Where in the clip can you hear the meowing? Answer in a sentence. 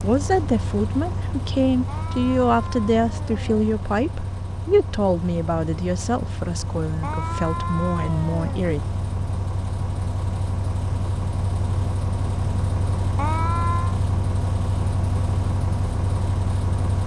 You can hear the meowing from 1.9 to 3.6 s, from 7.0 to 8.7 s and from 13.2 to 13.9 s.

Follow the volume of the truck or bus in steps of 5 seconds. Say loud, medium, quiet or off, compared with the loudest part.
medium, medium, loud, loud.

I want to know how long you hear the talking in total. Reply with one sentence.
You can hear the talking for 9 seconds altogether.